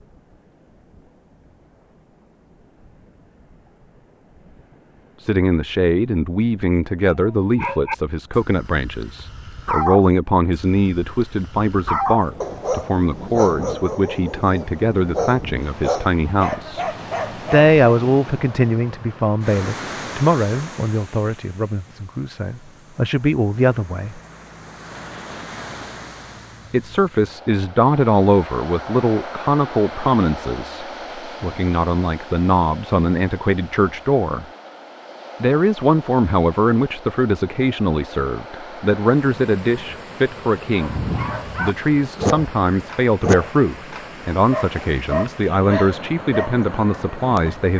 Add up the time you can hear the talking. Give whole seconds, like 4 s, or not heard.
38 s.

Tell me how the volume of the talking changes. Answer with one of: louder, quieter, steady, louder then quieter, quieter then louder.
steady.